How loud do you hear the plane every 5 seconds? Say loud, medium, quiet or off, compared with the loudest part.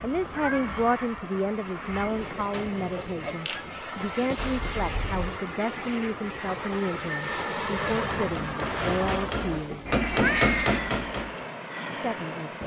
medium, loud, loud.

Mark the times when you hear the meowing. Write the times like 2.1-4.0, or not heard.
0.2-0.8, 4.3-5.3, 10.1-10.6.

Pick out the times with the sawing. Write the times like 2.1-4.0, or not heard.
not heard.